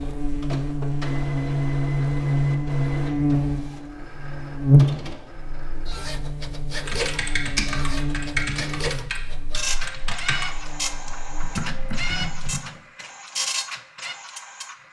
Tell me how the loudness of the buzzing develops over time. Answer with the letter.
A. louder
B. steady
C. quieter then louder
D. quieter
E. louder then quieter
D.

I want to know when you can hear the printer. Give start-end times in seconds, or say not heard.
0.0-14.8.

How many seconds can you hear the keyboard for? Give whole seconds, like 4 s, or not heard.
6 s.